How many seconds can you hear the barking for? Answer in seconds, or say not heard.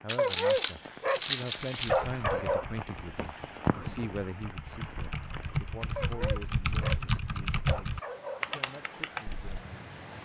4 s.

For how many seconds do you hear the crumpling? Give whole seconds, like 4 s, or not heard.
2 s.